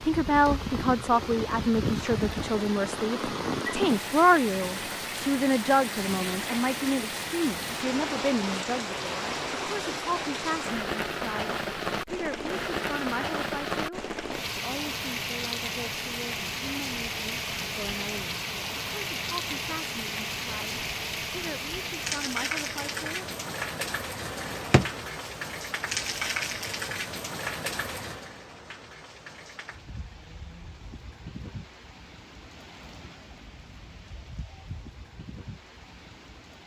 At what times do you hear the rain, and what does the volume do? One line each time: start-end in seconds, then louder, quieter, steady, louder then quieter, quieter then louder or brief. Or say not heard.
0.0-36.6 quieter.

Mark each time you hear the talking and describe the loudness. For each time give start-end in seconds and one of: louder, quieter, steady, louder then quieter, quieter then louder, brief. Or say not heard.
0.0-23.2 quieter.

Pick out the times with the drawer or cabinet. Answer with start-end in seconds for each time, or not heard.
24.4-24.9.